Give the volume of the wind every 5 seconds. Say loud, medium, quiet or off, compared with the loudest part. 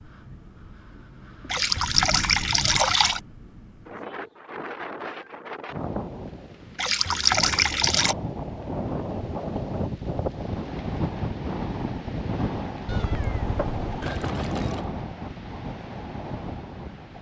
medium, loud, loud, medium.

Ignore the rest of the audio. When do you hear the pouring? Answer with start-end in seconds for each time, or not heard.
1.5-3.2, 6.8-8.2, 14.0-14.8.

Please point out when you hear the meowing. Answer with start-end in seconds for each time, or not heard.
12.8-14.1.